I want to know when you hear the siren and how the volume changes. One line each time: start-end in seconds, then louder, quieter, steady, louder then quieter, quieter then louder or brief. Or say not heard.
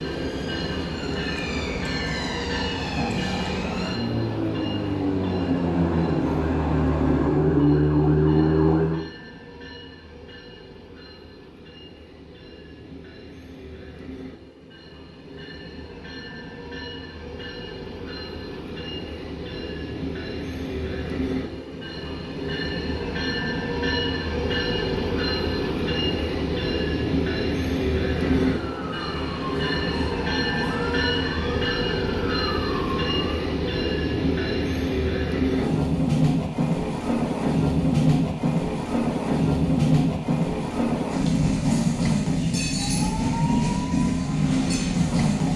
0.0-9.1 louder
28.3-33.5 steady
42.8-45.5 brief.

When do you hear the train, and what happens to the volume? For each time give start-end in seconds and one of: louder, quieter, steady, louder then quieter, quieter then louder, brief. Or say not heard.
0.0-45.5 quieter then louder.